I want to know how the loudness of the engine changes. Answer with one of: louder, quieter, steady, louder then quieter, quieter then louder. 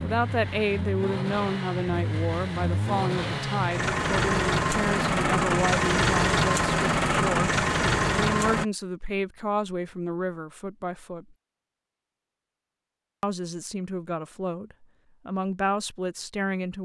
louder.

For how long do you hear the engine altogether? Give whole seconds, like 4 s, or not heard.
9 s.